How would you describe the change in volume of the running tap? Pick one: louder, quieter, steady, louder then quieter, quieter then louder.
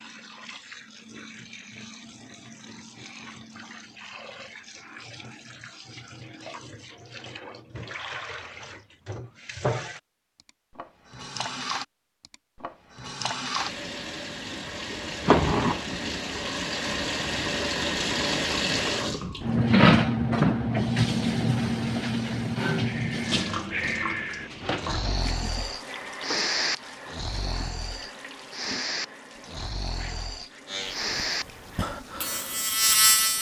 louder then quieter.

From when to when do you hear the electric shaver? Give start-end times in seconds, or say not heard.
30.6-33.3.